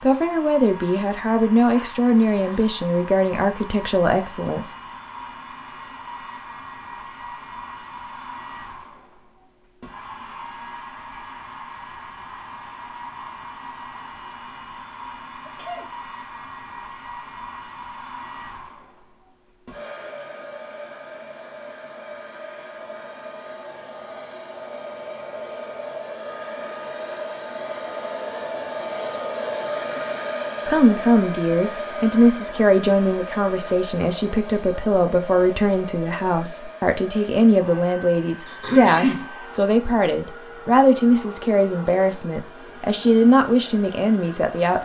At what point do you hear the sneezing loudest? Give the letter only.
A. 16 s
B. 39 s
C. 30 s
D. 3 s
B.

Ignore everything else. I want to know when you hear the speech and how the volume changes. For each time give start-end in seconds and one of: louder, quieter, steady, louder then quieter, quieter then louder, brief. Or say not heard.
0.0-4.8 steady
30.6-44.8 steady.